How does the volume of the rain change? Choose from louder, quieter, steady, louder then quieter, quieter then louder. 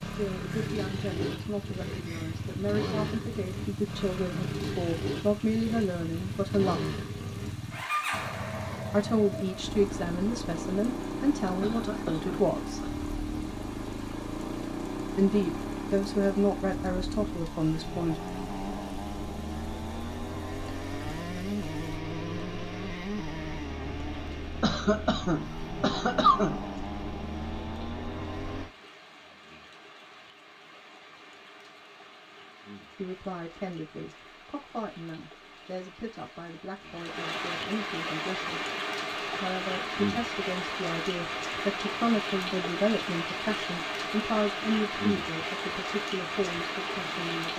louder.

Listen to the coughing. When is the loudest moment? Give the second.
26 s.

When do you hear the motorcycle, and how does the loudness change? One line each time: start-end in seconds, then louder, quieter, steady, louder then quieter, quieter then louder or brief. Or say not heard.
0.0-28.7 steady.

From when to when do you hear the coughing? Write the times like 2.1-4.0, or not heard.
11.6-12.9, 24.6-26.6.